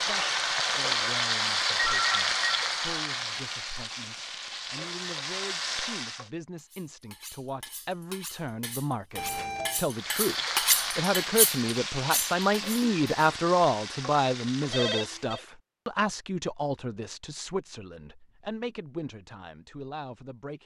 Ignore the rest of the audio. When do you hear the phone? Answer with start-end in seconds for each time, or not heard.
1.8-2.6, 9.2-9.8, 14.7-15.4.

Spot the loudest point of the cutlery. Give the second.
11 s.